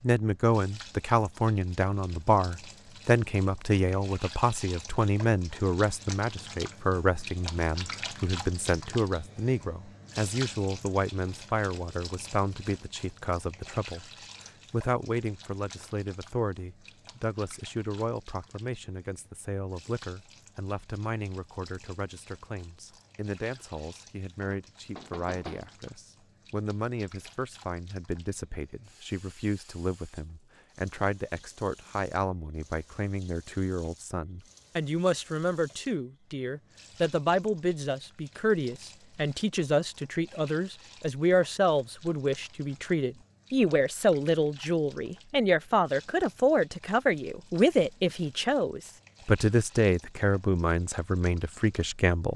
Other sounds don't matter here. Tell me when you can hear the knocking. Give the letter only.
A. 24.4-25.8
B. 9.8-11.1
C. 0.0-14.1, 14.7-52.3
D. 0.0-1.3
A.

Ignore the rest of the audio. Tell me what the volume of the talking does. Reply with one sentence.
The volume of the talking goes down, then up.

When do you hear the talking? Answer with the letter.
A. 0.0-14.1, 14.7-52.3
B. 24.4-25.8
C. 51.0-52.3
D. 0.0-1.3
A.